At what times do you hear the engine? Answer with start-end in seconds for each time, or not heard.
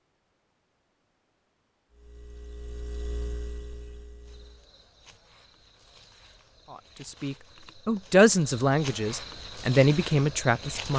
1.9-4.7.